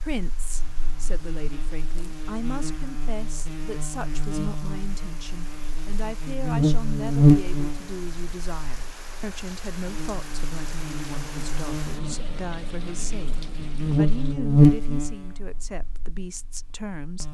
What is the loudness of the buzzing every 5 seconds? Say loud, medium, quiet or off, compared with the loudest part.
quiet, loud, loud, quiet.